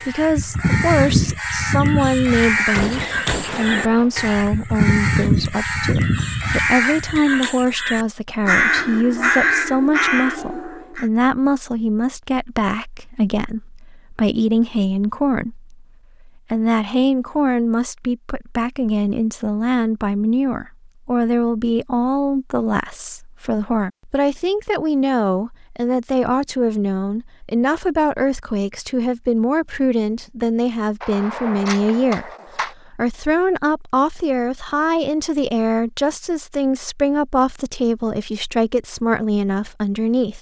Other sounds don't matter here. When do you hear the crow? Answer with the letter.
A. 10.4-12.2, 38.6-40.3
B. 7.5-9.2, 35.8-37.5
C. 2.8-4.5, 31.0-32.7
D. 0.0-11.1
D.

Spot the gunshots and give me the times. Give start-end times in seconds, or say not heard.
2.8-4.5, 31.0-32.7.